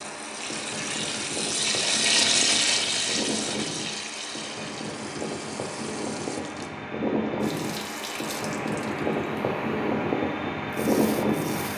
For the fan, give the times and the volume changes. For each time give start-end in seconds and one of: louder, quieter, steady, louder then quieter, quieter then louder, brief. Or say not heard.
0.0-11.7 louder.